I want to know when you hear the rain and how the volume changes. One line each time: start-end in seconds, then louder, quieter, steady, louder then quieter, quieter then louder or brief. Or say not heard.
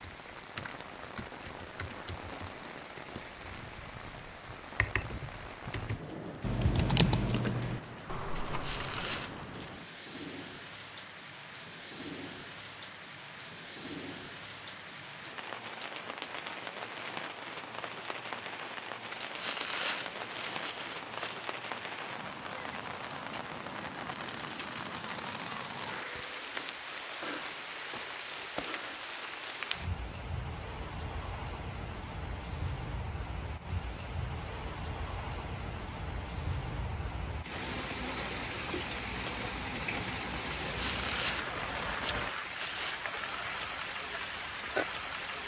0.0-45.4 louder.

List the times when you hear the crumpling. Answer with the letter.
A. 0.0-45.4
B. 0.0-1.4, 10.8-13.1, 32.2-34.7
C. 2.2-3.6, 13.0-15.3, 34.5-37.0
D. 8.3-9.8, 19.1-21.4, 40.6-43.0
D.